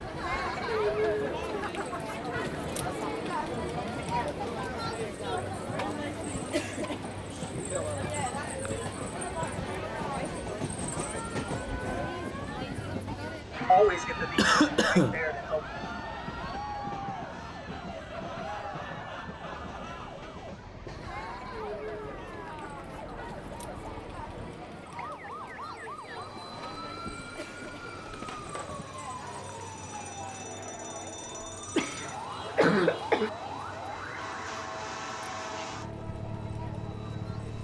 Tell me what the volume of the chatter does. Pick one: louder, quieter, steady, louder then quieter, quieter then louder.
quieter.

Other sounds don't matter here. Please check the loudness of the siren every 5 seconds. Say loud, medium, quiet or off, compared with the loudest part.
off, off, off, medium, medium, loud, loud, loud.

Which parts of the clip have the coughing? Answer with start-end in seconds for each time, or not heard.
13.7-15.6, 31.8-33.3.